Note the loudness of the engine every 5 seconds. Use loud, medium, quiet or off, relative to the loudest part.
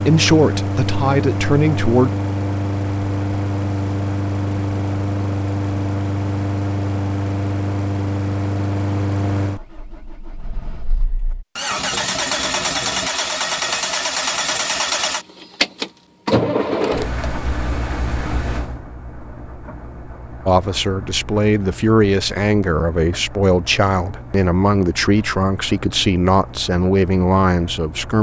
loud, loud, loud, loud, quiet, quiet.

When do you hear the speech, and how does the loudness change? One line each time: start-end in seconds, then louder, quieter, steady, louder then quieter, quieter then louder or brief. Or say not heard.
0.0-2.1 brief
20.4-28.1 steady.